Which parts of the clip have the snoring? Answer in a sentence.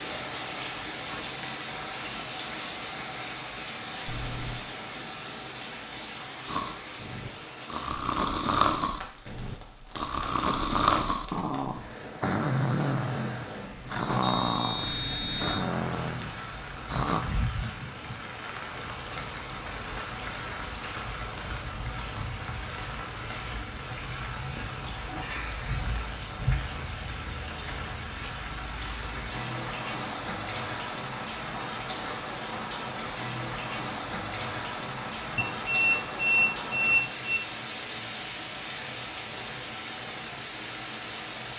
You can hear the snoring from 6.5 to 17.2 s.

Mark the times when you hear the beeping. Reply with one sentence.
You can hear the beeping from 4.0 to 4.7 s, from 14.2 to 15.8 s and from 35.4 to 37.4 s.